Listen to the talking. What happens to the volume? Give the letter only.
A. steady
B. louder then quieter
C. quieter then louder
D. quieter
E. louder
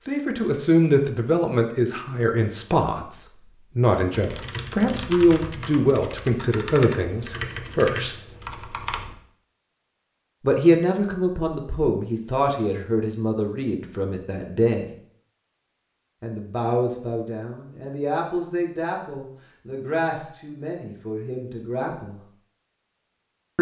D.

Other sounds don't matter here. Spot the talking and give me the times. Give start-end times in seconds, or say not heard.
0.1-8.2, 10.4-14.9, 16.2-22.2.